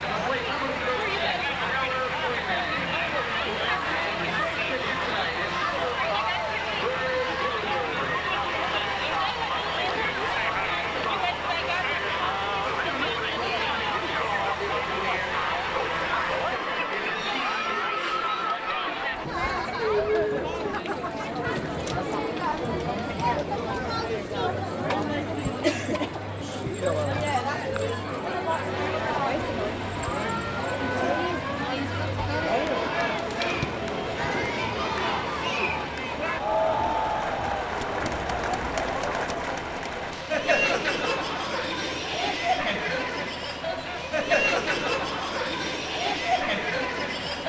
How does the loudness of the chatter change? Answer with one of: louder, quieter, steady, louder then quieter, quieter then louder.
steady.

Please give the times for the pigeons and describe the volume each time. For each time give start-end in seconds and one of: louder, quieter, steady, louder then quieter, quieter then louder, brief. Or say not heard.
not heard.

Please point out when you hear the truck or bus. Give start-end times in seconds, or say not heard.
0.0-16.6, 28.7-47.4.